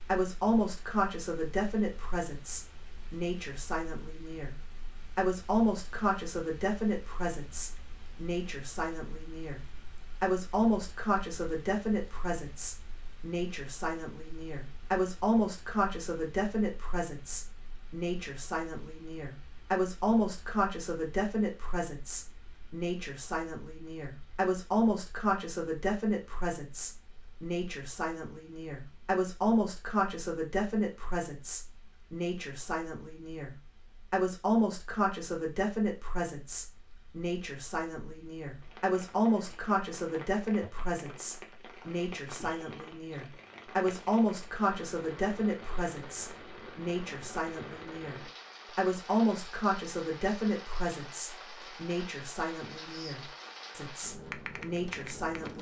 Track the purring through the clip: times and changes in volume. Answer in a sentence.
The purring can't be heard in this clip.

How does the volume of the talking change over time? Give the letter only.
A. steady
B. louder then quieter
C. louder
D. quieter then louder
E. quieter
A.